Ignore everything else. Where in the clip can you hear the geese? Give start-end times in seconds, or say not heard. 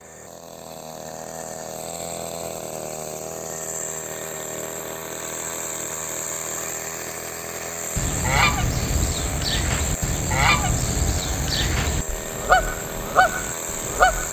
8.0-14.2.